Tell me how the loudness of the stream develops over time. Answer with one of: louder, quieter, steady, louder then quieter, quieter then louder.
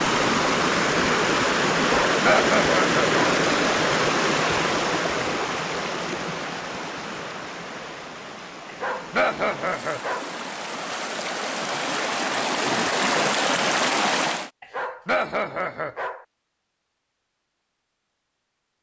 quieter then louder.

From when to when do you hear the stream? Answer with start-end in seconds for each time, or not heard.
0.0-14.5.